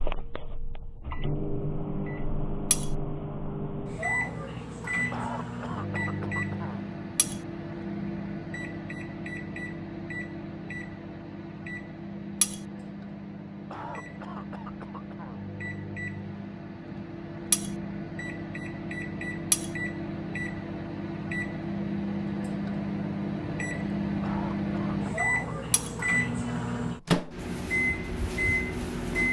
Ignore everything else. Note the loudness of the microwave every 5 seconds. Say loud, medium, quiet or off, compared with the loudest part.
medium, medium, medium, medium, loud, loud.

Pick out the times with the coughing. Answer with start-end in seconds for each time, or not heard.
5.1-6.8, 13.7-15.4, 24.2-25.9.